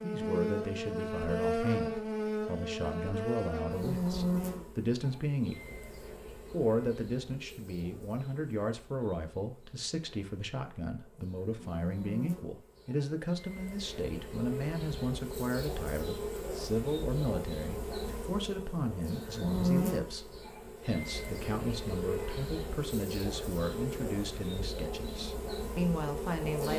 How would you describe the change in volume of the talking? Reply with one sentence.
The loudness of the talking stays about the same.